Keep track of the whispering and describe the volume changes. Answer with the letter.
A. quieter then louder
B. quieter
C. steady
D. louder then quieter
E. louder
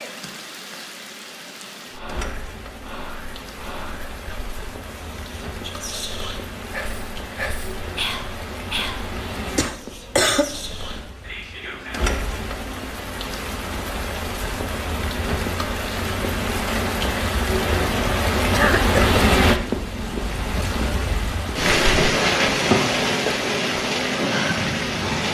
D.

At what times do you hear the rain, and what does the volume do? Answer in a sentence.
The rain can be heard from 0.0 to 25.2 s, getting louder.